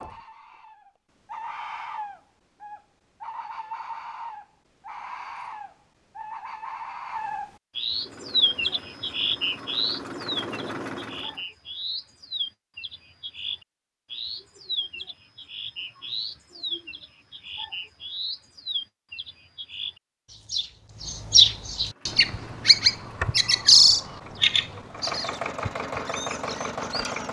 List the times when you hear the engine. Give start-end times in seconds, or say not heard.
7.8-11.4, 21.7-27.2.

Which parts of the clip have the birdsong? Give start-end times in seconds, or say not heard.
0.0-27.2.